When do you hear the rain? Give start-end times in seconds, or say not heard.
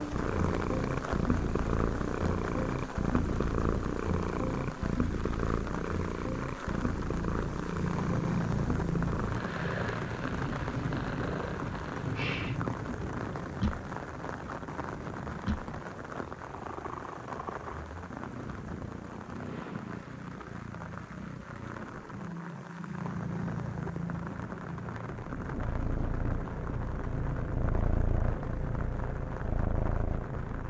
0.0-30.6.